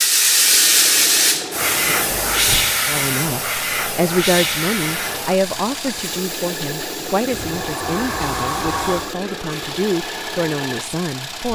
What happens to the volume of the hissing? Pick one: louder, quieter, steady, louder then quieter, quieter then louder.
quieter.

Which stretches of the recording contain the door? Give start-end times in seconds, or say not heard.
2.1-2.8, 7.3-9.1.